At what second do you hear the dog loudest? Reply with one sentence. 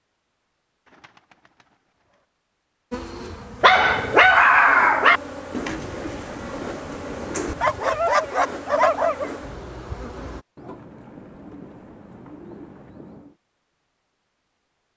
The loudest moment of the dog is at 4 seconds.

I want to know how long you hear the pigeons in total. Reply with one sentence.
The pigeons can be heard for 6 seconds in total.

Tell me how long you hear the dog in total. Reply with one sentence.
You can hear the dog for 3 seconds altogether.